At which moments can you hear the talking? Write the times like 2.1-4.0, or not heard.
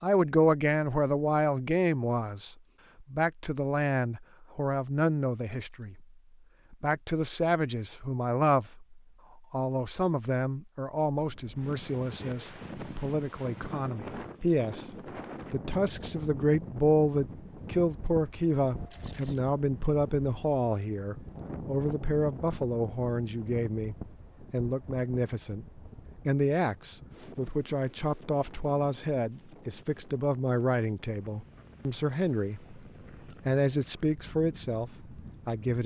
0.0-6.0, 6.7-32.8, 33.5-35.8.